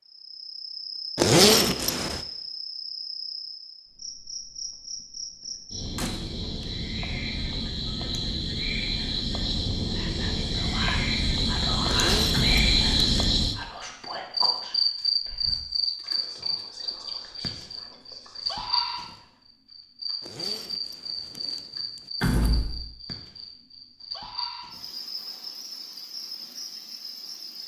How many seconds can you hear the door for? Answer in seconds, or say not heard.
2 s.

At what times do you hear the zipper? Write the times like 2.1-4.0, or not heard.
1.1-2.2, 11.8-13.3, 20.2-22.1.